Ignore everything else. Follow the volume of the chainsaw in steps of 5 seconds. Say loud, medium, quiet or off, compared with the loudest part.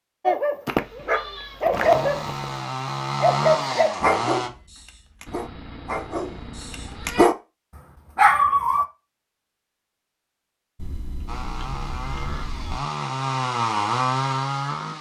loud, off, loud.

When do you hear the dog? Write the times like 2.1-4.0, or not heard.
0.2-2.5, 3.2-7.3, 8.2-8.8.